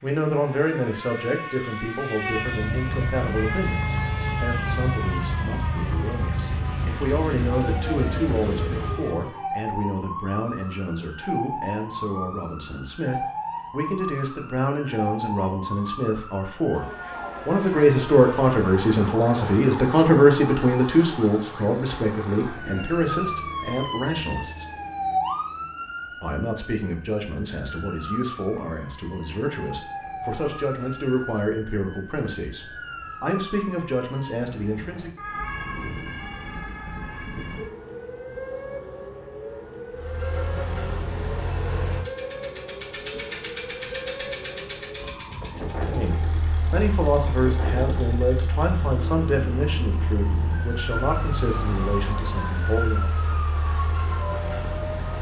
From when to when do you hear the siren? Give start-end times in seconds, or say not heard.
0.0-55.1.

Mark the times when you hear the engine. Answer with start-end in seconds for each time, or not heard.
2.1-9.3, 39.9-55.1.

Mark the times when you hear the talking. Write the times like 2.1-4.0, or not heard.
0.0-24.8, 26.1-35.2, 45.8-53.2.